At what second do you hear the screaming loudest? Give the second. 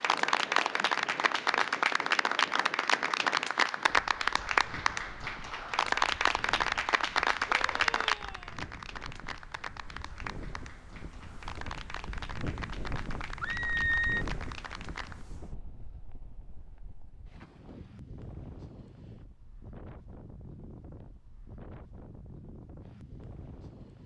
14 s.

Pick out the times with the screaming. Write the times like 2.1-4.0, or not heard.
7.5-8.6, 13.4-14.2.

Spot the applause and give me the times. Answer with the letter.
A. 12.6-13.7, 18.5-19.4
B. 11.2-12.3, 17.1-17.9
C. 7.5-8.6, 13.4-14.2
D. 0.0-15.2
D.